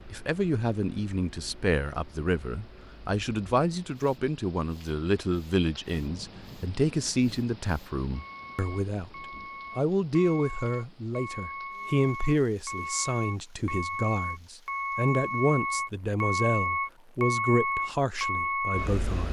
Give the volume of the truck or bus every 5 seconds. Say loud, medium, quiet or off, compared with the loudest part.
quiet, quiet, medium, loud.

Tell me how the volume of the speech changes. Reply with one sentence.
The loudness of the speech stays about the same.